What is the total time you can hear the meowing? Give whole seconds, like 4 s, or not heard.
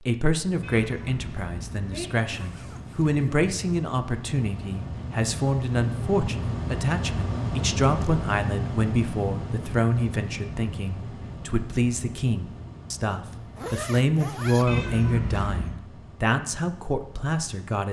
3 s.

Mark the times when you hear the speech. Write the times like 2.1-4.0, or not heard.
0.1-17.8.